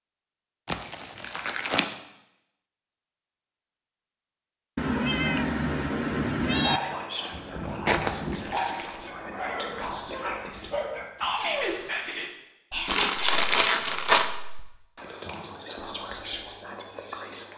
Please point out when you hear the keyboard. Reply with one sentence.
You can't hear the keyboard here.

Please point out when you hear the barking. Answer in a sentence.
You can hear the barking from 6.5 to 11.9 s.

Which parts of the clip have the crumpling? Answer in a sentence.
The crumpling can be heard from 0.7 to 1.9 s, from 7.8 to 9.1 s and from 12.8 to 14.3 s.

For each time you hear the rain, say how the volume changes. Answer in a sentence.
You can't hear the rain here.